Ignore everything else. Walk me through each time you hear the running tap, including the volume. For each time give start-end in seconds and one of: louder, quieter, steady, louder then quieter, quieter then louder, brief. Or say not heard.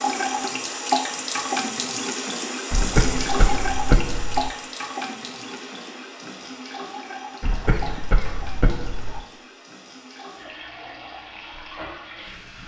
0.0-12.6 quieter.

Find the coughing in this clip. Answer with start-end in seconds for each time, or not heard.
2.7-4.5, 7.4-9.2.